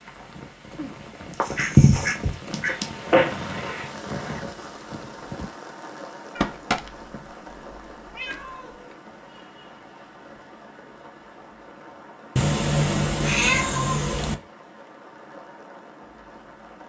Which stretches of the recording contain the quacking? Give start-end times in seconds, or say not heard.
1.4-2.9.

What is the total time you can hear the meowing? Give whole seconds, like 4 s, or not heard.
5 s.